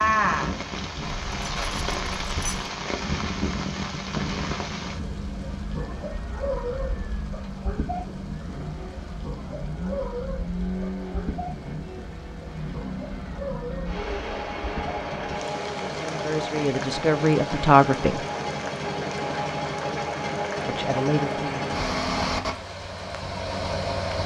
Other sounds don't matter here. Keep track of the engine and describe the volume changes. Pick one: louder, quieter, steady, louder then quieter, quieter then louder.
louder.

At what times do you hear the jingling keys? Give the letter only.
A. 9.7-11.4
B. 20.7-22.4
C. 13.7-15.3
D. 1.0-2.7
D.